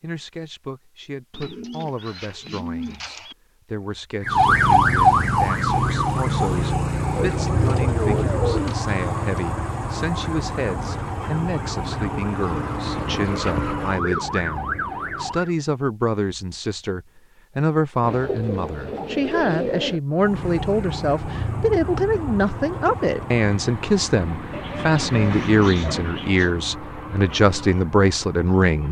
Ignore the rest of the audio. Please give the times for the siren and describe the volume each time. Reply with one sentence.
You can hear the siren from 4.2 to 15.6 s, getting quieter; and from 20.1 to 28.8 s, getting quieter.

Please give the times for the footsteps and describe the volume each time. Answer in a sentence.
You can't hear the footsteps here.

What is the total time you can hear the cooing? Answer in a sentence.
The cooing can be heard for 10 seconds in total.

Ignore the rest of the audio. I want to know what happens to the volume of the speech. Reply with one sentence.
The volume of the speech goes up.